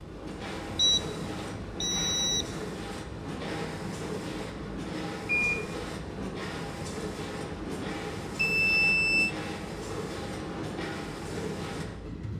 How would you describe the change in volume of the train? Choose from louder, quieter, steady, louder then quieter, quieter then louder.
steady.